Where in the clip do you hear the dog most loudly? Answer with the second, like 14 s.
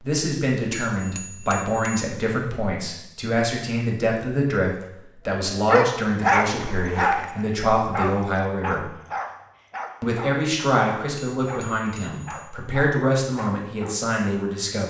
6 s.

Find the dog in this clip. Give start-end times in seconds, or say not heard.
5.5-13.9.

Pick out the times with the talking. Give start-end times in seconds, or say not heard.
0.0-8.9, 10.0-14.8.